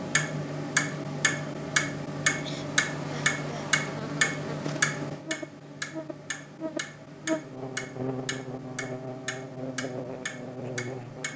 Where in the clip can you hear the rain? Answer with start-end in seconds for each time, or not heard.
not heard.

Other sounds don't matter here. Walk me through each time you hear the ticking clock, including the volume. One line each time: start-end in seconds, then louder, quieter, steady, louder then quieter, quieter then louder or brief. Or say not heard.
0.0-11.3 quieter.